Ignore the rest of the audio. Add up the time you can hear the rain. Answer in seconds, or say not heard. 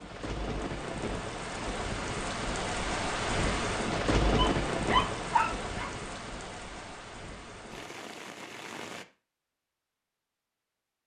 9 s.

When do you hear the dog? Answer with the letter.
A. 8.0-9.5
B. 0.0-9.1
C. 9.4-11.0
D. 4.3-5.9
D.